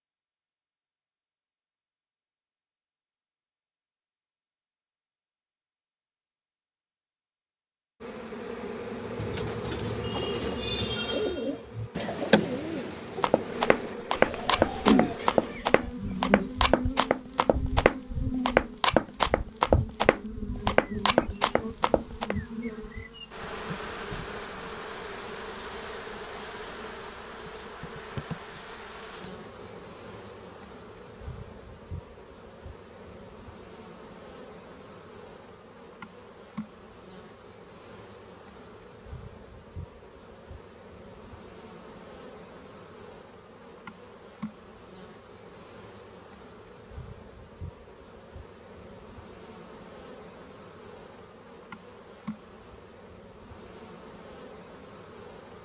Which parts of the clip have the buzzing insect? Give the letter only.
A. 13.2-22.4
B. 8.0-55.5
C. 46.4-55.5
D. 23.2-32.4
B.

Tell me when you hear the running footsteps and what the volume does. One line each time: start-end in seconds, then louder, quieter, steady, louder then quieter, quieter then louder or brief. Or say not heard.
13.2-22.4 steady.